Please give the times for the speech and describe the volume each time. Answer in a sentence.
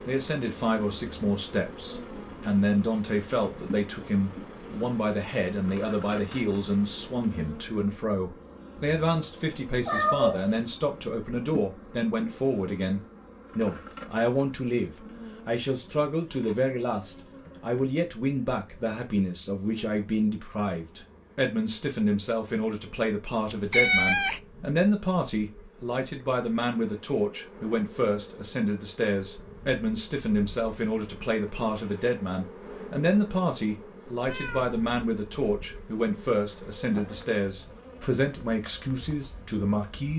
You can hear the speech from 0.1 to 40.1 s, at a steady volume.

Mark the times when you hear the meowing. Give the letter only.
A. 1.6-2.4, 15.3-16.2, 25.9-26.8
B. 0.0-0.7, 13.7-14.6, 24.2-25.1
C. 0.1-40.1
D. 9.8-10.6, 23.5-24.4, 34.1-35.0
D.